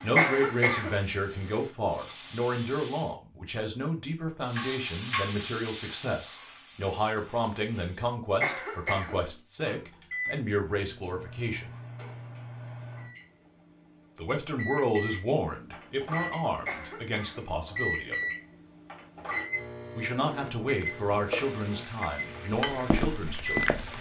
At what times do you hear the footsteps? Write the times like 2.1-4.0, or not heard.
22.7-23.9.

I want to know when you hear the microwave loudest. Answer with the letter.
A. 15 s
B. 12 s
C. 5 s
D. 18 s
D.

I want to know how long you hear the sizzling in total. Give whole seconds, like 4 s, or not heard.
10 s.